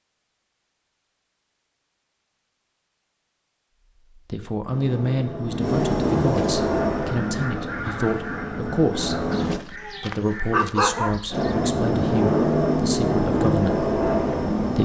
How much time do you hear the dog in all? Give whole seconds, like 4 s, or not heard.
2 s.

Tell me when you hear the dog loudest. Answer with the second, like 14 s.
11 s.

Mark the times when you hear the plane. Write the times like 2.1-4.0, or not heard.
4.7-9.6, 11.3-14.8.